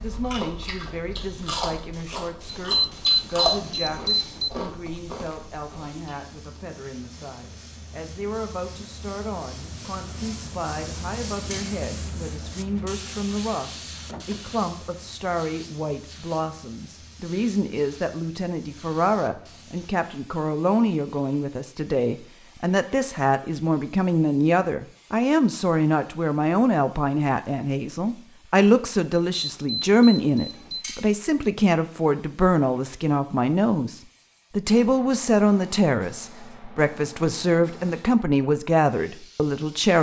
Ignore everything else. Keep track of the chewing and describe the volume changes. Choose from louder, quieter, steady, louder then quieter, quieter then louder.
louder then quieter.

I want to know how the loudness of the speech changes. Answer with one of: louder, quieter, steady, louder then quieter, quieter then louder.
louder.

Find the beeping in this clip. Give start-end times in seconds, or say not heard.
2.5-4.5, 29.4-30.9.